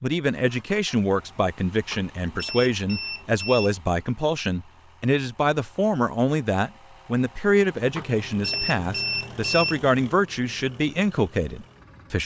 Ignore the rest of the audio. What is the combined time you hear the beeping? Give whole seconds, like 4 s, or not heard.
4 s.